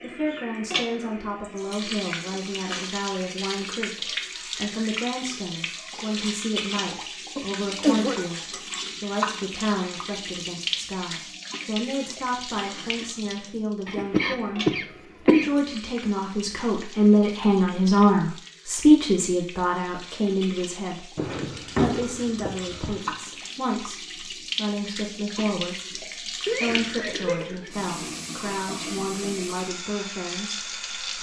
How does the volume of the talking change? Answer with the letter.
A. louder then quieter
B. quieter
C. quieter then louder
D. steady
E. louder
A.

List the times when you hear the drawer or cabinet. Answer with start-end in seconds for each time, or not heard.
12.6-13.2, 21.1-22.9.